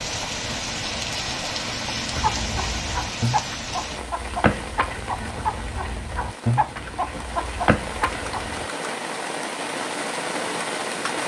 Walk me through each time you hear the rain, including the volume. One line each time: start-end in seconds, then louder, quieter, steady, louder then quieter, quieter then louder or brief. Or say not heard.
0.0-11.2 quieter then louder.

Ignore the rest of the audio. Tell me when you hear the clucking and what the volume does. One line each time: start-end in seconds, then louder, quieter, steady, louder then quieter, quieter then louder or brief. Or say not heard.
2.1-8.7 steady.